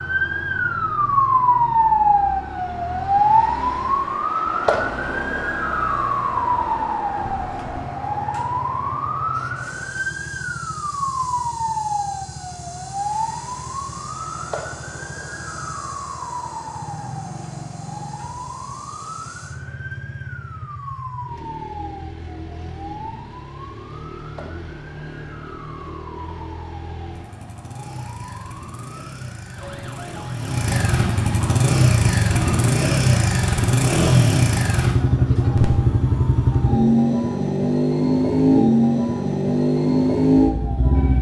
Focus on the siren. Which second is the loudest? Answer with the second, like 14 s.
2 s.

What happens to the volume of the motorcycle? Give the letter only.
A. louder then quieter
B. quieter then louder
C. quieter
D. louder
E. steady
D.